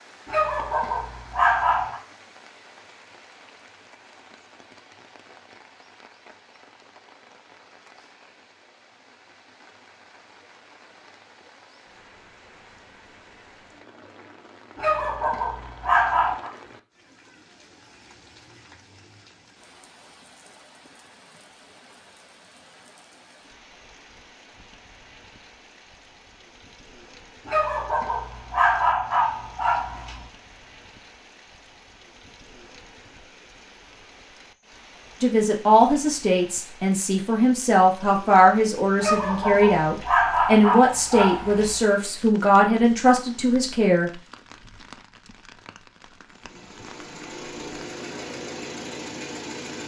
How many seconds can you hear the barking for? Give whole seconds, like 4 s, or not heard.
9 s.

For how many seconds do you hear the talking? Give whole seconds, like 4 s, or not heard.
9 s.